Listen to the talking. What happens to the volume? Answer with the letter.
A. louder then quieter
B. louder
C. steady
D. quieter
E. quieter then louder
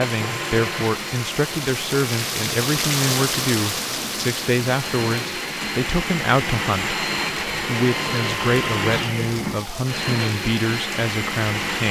C.